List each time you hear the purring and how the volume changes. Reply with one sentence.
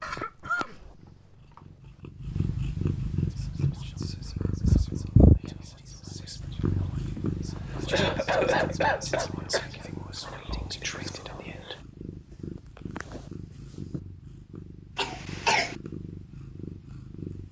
You can hear the purring from 0.0 to 17.4 s, getting louder then quieter.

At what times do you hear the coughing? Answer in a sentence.
The coughing can be heard from 0.0 to 1.6 s, from 7.2 to 9.7 s and from 14.9 to 15.8 s.